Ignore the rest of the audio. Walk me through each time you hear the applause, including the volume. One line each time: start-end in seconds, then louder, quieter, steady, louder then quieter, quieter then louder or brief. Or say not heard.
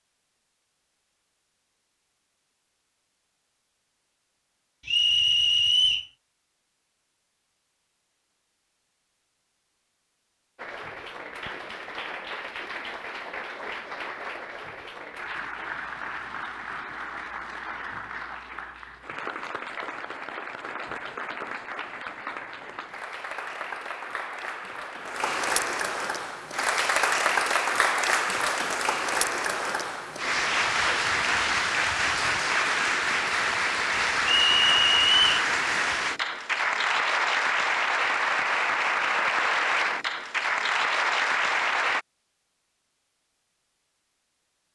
10.6-42.0 louder.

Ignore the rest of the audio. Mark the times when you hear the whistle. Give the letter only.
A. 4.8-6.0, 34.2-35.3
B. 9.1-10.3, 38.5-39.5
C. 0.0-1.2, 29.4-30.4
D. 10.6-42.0
A.